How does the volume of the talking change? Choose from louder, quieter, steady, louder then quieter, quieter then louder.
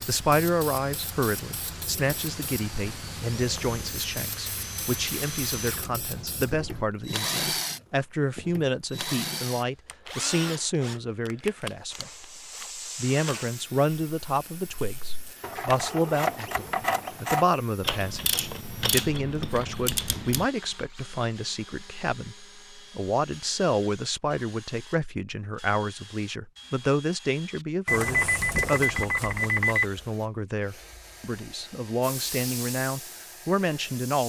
steady.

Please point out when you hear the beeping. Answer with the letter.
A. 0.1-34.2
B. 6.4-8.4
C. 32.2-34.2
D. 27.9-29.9
D.